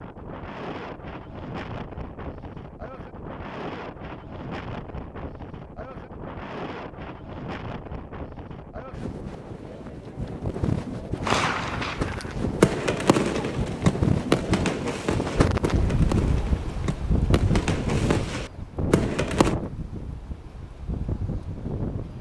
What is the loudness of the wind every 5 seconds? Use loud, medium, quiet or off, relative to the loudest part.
medium, medium, loud, loud, medium.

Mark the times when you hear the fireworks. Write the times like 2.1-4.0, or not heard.
11.2-19.6.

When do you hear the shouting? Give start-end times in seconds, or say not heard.
not heard.